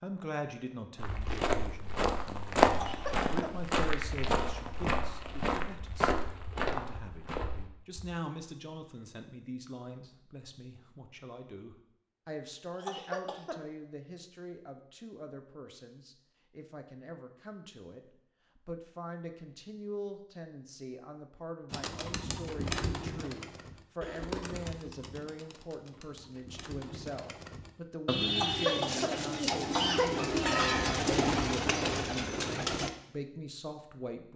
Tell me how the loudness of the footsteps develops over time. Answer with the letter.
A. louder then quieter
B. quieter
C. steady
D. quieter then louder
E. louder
A.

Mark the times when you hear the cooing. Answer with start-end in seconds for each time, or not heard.
21.7-32.9.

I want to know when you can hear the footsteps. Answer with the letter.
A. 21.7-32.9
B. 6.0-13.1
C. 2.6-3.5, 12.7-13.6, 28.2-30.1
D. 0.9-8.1
D.